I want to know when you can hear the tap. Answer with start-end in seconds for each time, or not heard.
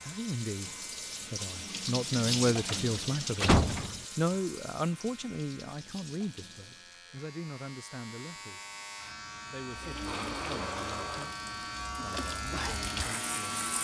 0.0-7.0, 9.7-13.7.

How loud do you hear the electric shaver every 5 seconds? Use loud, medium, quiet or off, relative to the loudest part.
quiet, medium, loud.